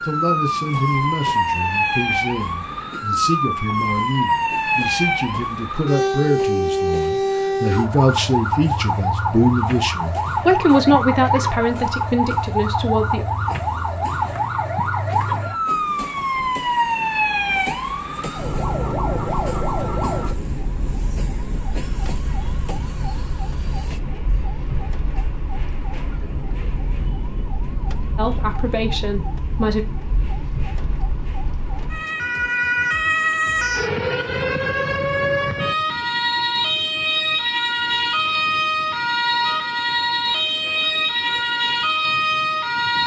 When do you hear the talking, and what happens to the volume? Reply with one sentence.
The talking can be heard from 0.0 to 13.2 s, getting louder; and briefly from 28.1 to 29.9 s.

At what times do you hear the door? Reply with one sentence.
You can't hear the door here.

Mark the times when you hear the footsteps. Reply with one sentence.
You can't hear the footsteps here.